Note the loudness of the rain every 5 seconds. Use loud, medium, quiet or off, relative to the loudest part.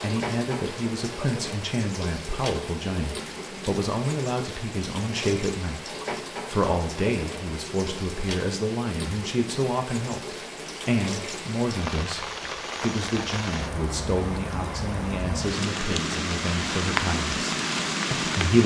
medium, medium, medium, loud.